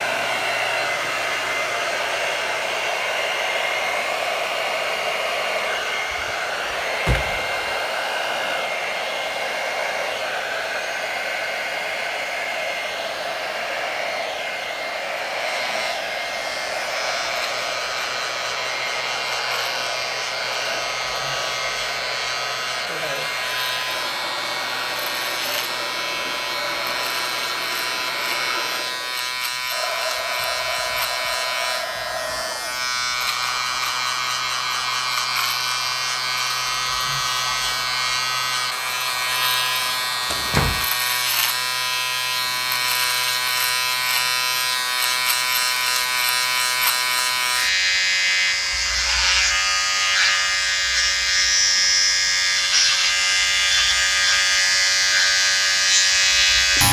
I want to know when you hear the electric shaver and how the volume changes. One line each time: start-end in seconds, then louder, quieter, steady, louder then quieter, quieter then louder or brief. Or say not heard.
15.3-56.8 louder.